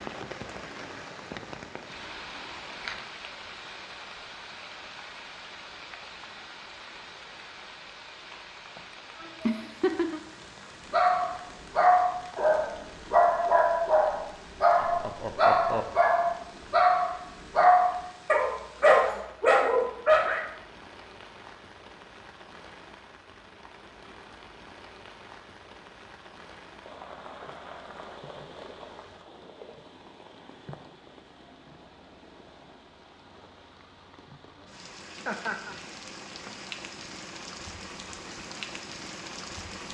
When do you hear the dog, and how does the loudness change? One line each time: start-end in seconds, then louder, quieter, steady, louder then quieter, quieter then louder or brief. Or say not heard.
10.9-20.4 steady.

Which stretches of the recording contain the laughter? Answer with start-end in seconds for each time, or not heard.
8.8-10.2, 14.8-15.8, 35.2-35.8.